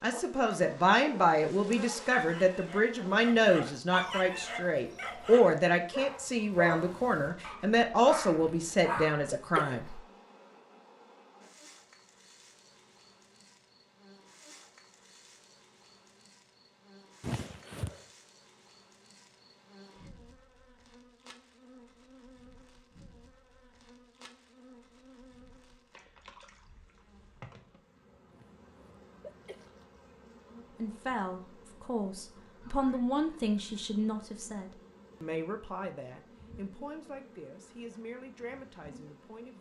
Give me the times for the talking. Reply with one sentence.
You can hear the talking from 0.0 to 9.8 s and from 30.8 to 39.5 s.